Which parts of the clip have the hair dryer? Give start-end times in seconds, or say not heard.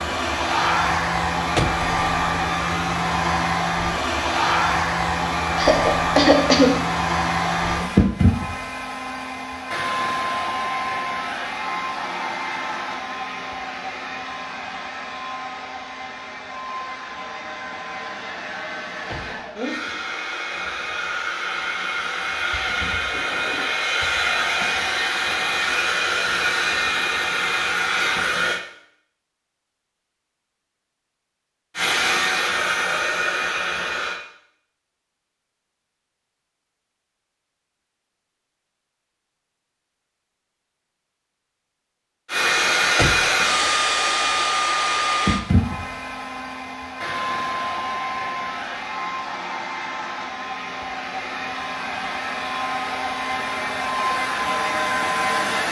0.0-28.6, 31.8-34.2, 42.2-55.6.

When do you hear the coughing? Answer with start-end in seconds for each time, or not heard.
5.5-6.7.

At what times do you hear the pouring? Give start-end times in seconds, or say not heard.
not heard.